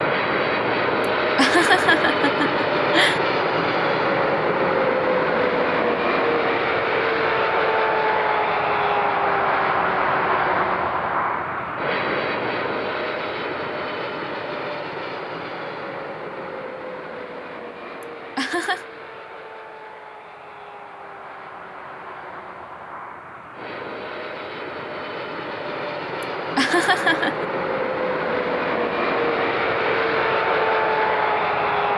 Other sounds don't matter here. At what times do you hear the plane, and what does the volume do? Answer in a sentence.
The plane can be heard from 0.0 to 31.9 s, getting quieter then louder.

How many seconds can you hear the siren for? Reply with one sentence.
The siren can't be heard in this clip.